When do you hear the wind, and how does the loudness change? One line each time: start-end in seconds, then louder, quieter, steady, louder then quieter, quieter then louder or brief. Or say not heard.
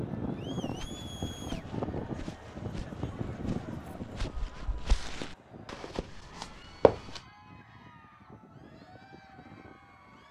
0.0-10.2 quieter.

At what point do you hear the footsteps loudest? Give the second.
7 s.